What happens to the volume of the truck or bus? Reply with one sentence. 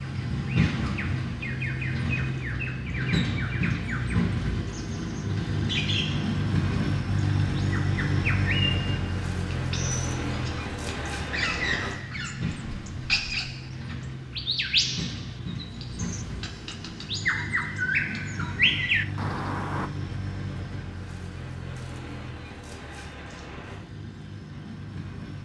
The loudness of the truck or bus goes down.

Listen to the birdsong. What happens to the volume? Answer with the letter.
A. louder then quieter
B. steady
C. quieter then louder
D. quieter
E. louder
E.